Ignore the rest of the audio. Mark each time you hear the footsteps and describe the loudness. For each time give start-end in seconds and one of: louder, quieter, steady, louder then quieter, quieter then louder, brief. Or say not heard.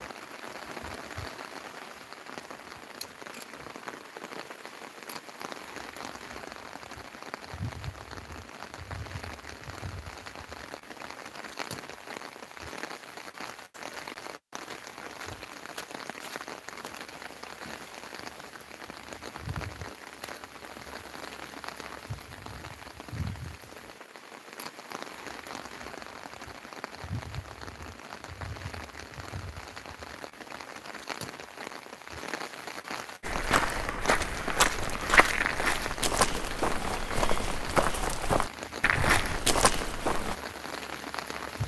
33.2-40.4 steady.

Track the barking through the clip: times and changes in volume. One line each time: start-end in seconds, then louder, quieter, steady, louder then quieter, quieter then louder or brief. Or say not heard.
not heard.